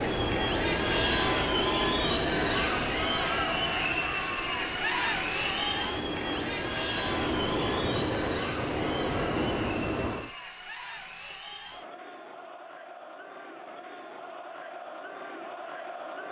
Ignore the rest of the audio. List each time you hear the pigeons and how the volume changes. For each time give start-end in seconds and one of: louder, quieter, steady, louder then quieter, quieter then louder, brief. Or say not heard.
not heard.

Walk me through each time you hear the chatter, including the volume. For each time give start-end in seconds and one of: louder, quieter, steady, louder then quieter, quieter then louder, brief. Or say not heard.
0.0-16.2 quieter.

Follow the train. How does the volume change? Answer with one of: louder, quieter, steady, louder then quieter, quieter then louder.
quieter then louder.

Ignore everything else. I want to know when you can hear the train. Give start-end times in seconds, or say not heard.
0.0-10.3.